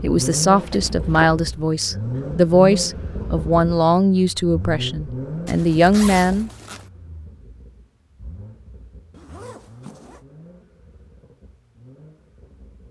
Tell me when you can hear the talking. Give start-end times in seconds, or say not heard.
0.0-6.5.